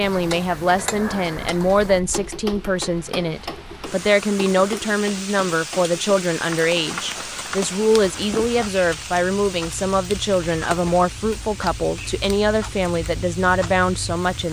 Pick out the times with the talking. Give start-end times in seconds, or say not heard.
0.0-14.4.